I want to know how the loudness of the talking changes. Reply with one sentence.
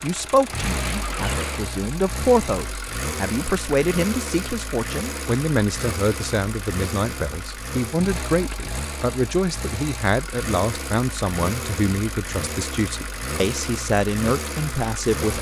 The loudness of the talking stays about the same.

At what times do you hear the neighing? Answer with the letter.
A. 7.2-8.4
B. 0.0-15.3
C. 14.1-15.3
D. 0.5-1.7
D.